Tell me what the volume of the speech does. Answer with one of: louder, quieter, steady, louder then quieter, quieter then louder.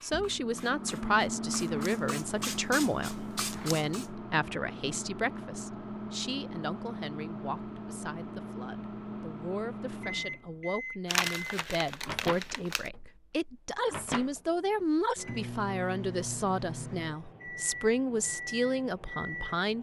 quieter then louder.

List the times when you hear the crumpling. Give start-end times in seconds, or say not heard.
11.1-12.9.